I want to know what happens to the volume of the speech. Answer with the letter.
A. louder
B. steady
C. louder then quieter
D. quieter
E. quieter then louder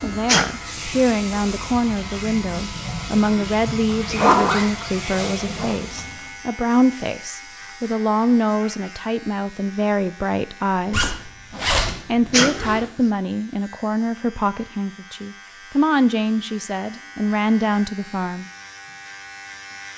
B.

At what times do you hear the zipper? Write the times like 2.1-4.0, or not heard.
3.9-5.8, 10.9-12.8.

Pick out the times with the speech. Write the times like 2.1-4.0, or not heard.
0.0-11.2, 12.1-18.4.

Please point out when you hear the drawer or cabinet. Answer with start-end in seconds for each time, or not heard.
not heard.